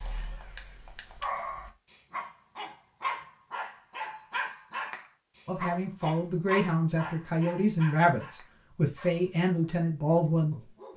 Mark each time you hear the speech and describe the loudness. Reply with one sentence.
The speech can be heard from 5.5 to 10.9 s, at a steady volume.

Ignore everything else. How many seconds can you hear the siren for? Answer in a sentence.
You can't hear the siren here.